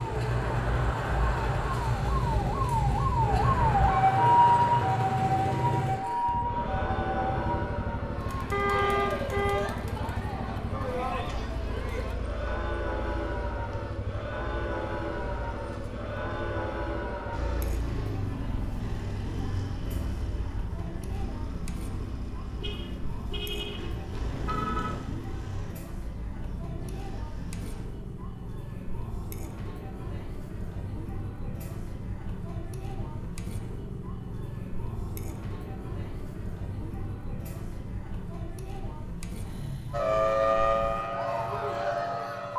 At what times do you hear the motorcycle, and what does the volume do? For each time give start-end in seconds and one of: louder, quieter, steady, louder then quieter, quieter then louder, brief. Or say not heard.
0.0-42.5 quieter.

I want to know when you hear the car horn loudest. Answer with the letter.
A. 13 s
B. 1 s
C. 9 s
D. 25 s
C.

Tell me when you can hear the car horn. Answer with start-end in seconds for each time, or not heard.
8.5-9.8, 22.6-24.9.